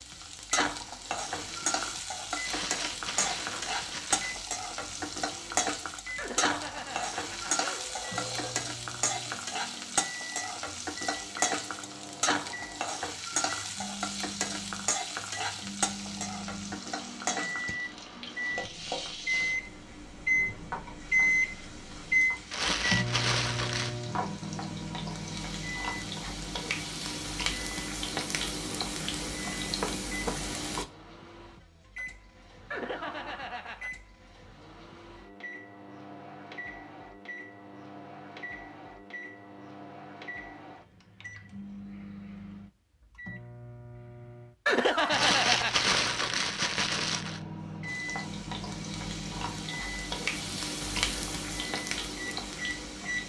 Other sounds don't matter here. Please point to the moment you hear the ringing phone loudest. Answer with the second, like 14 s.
45 s.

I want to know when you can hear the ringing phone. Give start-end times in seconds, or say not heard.
6.2-8.6, 32.7-33.9, 44.6-45.8.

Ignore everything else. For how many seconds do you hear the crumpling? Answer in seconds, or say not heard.
6 s.